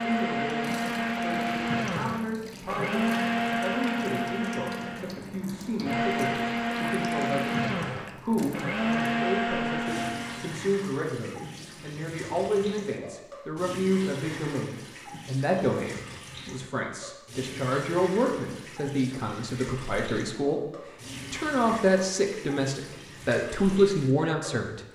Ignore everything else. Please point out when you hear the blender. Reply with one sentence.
You can hear the blender from 0.0 to 10.6 s.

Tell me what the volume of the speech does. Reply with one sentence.
The volume of the speech goes up.